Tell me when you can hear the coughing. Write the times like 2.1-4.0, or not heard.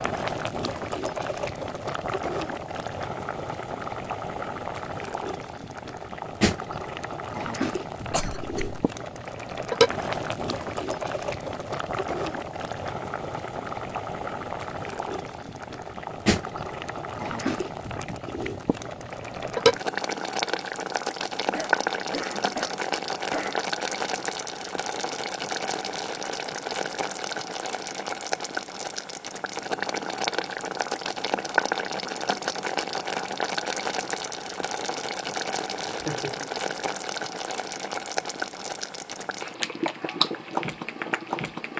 8.1-8.6, 21.5-23.6, 35.9-36.5.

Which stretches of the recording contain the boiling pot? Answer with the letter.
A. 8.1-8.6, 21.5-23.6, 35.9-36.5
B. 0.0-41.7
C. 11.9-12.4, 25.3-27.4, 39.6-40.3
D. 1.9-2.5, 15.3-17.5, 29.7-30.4
B.